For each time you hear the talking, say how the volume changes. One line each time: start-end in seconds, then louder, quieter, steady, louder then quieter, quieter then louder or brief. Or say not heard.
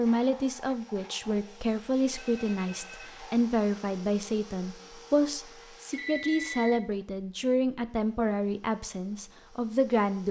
0.0-10.2 steady.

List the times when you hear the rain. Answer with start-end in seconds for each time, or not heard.
not heard.